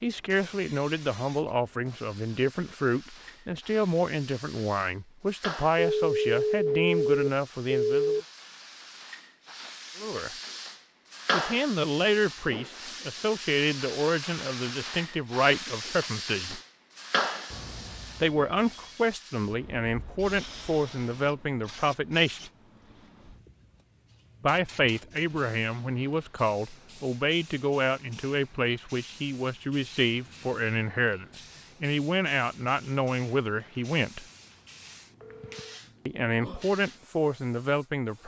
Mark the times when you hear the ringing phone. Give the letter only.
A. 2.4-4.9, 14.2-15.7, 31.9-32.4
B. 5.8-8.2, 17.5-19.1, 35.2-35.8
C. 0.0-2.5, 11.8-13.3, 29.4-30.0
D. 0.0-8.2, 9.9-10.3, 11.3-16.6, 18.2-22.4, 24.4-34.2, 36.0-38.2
B.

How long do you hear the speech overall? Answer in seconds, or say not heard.
30 s.